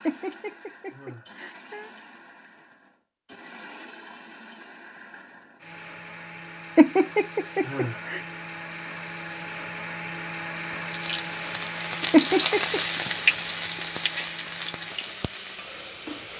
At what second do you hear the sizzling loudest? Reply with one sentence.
The loudest moment of the sizzling is at 13 seconds.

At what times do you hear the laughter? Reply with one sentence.
The laughter can be heard from 0.1 to 1.9 s, from 6.8 to 8.2 s and from 12.1 to 12.8 s.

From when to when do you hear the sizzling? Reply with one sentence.
The sizzling can be heard from 10.8 to 16.3 s.